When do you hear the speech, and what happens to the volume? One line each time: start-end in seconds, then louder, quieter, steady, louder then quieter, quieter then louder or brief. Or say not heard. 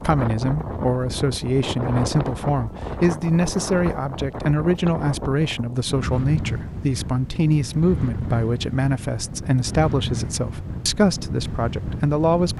0.0-12.5 steady.